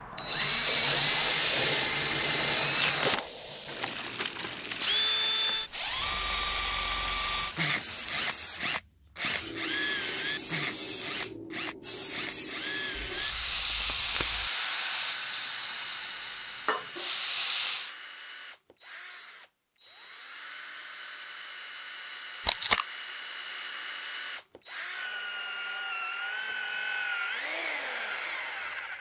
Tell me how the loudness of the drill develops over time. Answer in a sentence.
The loudness of the drill goes down, then up.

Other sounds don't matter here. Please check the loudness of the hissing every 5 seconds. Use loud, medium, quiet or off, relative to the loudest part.
loud, medium, loud, loud, off, off.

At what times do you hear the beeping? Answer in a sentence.
You can't hear the beeping here.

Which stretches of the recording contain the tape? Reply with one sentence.
You can hear the tape from 2.8 to 3.2 s, from 13.0 to 14.5 s and from 22.4 to 22.9 s.